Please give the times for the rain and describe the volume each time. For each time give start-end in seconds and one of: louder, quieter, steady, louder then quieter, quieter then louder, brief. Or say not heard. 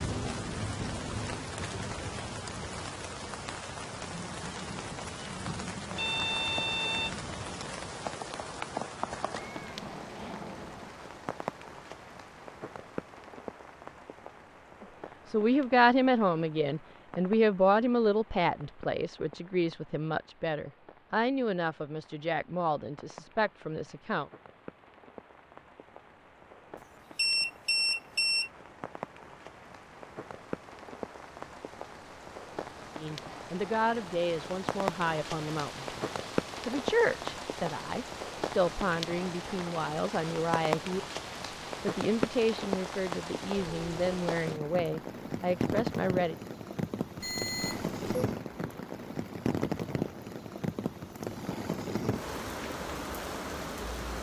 0.0-54.1 quieter then louder.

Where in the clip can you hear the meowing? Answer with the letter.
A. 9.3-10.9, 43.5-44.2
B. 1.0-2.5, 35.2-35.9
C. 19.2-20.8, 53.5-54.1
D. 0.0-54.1
A.